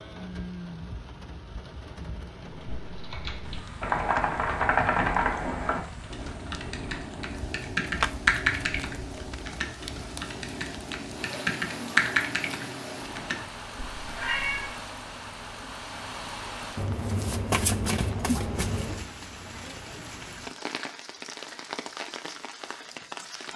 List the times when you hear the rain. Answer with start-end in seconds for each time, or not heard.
0.0-23.5.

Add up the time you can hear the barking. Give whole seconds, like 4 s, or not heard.
not heard.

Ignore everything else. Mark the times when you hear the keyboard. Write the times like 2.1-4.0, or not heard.
2.6-13.4.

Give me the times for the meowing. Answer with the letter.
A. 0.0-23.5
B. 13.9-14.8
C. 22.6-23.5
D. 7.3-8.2
B.